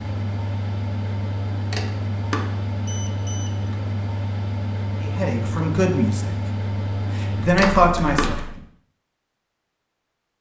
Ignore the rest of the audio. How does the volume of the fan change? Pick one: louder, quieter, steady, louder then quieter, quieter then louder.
steady.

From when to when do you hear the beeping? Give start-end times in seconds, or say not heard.
1.7-3.5, 7.5-8.3.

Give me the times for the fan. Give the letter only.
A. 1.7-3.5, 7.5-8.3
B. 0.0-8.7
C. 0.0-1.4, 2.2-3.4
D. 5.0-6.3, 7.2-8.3
B.